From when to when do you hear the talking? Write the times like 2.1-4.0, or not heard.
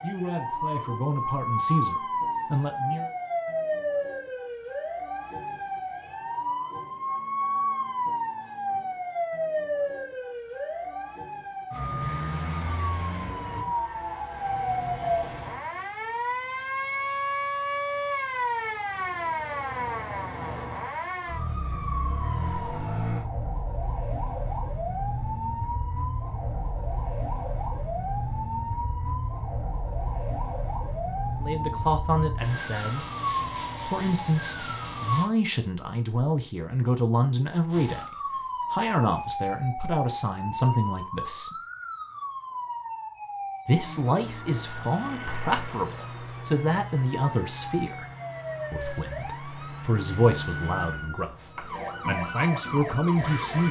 0.0-3.1, 31.4-33.0, 33.9-41.6, 43.6-48.0, 48.7-53.6.